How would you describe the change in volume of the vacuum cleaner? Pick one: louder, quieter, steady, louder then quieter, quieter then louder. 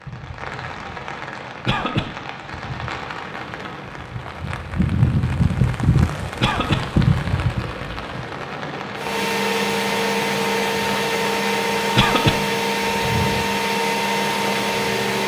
steady.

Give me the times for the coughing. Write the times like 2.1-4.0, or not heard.
1.6-2.1, 6.4-6.8, 11.9-12.4.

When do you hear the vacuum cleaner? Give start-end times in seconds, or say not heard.
8.9-15.2.